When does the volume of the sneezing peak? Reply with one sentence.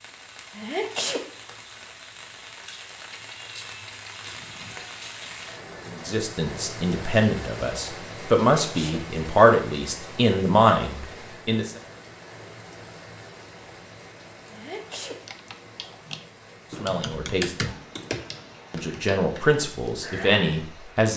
The loudest moment of the sneezing is at 1 second.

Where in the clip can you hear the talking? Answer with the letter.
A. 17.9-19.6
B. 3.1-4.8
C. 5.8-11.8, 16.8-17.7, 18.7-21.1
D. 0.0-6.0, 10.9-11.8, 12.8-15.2
C.